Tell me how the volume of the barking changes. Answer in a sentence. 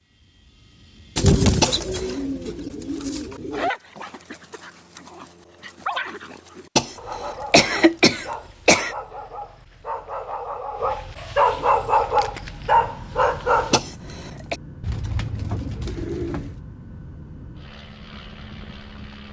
The loudness of the barking goes up.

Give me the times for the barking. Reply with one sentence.
You can hear the barking from 2.9 to 13.8 s.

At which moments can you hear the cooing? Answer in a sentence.
The cooing can be heard from 1.1 to 3.7 s and from 14.8 to 16.6 s.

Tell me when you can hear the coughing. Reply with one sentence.
You can hear the coughing from 1.6 to 2.2 s, from 6.8 to 8.9 s and from 13.7 to 14.6 s.